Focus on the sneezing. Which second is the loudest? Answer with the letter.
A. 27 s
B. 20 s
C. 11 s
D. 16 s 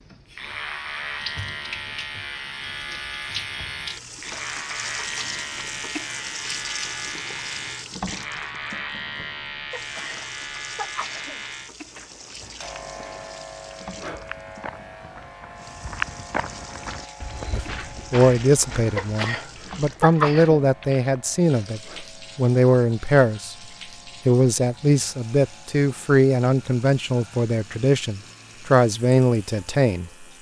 B.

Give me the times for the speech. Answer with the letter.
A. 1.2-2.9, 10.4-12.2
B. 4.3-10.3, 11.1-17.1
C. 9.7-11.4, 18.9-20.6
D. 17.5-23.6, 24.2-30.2
D.